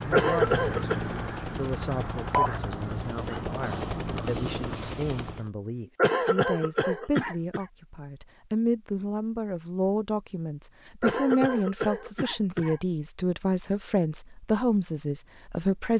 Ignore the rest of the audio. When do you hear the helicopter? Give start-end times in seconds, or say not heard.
0.0-5.5.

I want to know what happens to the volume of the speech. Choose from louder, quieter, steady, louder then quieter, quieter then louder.
louder.